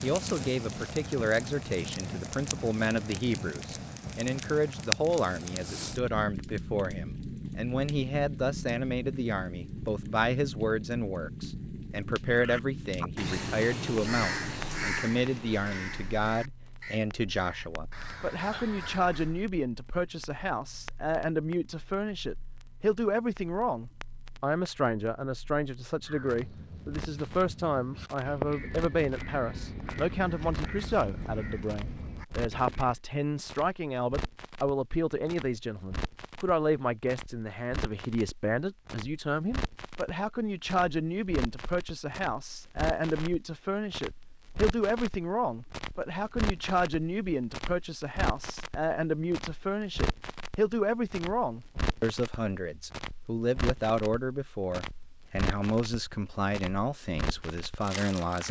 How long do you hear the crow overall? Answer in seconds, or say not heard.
14 s.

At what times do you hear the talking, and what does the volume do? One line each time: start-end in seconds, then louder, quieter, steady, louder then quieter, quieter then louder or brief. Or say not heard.
0.0-58.4 steady.